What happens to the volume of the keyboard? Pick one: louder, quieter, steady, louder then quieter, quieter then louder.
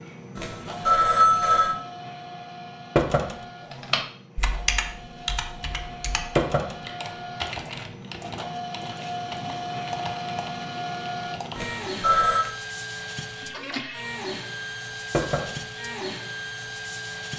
quieter.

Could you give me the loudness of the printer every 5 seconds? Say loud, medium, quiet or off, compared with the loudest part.
medium, loud, loud, loud.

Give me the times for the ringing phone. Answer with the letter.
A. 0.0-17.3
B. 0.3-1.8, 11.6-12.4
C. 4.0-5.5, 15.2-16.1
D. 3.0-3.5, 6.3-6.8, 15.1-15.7
B.